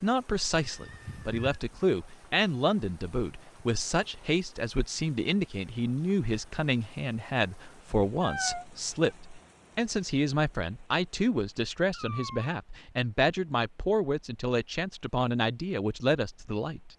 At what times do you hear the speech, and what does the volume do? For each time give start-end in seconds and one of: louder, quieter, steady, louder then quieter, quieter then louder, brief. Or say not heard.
0.0-16.9 steady.